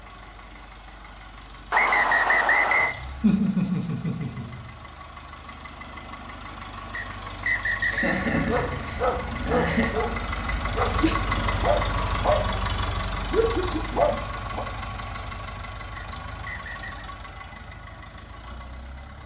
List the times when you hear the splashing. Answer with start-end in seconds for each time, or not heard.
not heard.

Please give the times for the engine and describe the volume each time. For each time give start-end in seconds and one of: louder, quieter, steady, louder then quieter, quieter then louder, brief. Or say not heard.
0.0-19.2 louder then quieter.